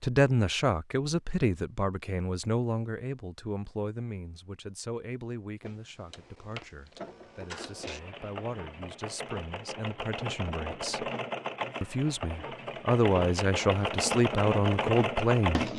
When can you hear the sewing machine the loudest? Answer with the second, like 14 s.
15 s.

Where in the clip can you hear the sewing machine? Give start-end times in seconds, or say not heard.
5.6-15.7.